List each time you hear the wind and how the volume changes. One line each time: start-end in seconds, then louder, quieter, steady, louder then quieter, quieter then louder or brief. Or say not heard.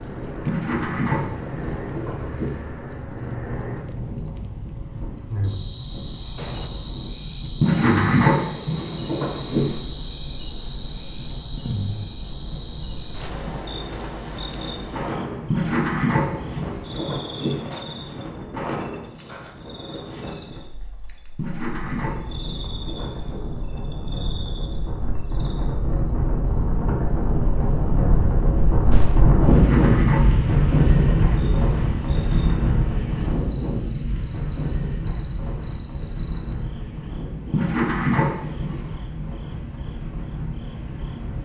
0.0-41.4 louder then quieter.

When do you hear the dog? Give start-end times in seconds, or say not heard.
0.5-2.5, 7.6-9.8, 15.5-17.6, 21.4-23.4, 29.4-31.7, 37.5-38.9.